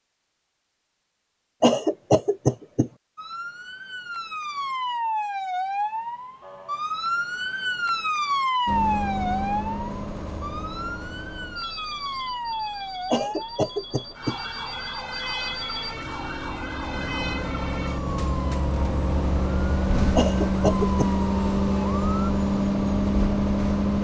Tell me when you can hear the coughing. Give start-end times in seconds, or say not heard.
1.6-2.9, 13.1-14.3, 20.1-21.1.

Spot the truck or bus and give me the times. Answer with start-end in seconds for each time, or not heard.
8.7-23.9.